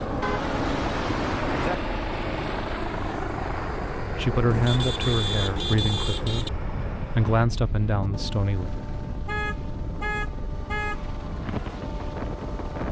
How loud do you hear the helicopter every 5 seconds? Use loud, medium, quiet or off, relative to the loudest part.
loud, medium, medium.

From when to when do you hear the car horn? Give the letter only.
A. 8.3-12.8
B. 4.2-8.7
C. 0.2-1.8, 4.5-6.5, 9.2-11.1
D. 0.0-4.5
C.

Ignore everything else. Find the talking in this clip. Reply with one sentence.
The talking can be heard from 4.2 to 8.7 s.